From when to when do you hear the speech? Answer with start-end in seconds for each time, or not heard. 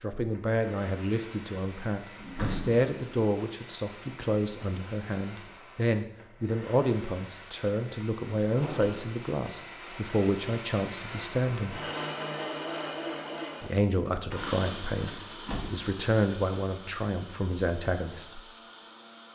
0.0-11.8, 13.6-18.4.